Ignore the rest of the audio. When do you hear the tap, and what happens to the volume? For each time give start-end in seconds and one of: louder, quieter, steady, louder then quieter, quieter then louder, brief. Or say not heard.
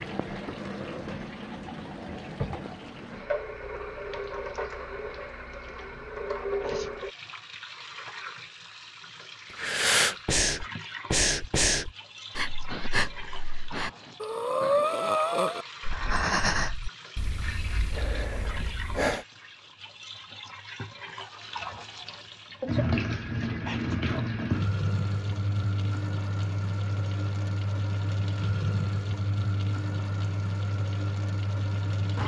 0.0-32.2 quieter then louder.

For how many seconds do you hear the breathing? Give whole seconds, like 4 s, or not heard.
10 s.